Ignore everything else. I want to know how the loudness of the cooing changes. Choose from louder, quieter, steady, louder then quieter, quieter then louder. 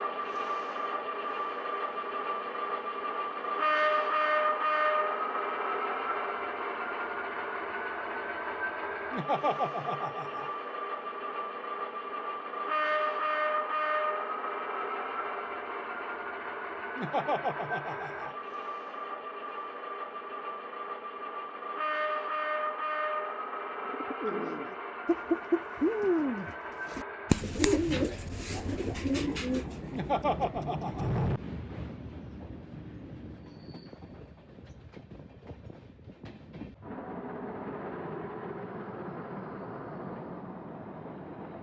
louder then quieter.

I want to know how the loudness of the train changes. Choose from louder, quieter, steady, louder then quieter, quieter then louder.
quieter.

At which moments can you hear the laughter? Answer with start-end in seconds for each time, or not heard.
9.1-10.5, 16.9-18.3, 29.9-31.3.